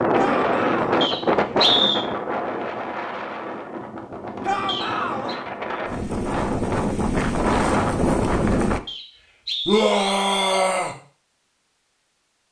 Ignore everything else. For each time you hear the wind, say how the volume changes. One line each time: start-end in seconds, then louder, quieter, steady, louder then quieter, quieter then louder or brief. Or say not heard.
0.0-8.8 quieter then louder.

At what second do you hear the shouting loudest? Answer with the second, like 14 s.
10 s.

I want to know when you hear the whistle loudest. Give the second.
2 s.